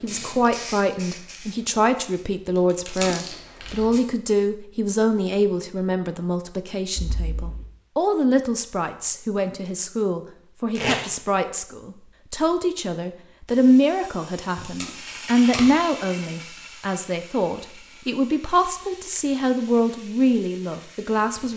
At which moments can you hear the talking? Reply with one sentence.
You can hear the talking from 0.0 to 21.5 s.